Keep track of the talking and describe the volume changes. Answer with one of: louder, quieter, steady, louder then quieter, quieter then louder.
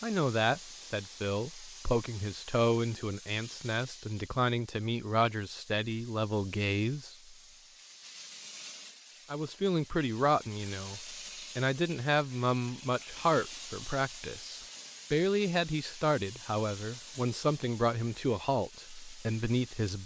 steady.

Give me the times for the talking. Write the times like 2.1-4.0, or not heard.
0.0-7.3, 9.3-20.0.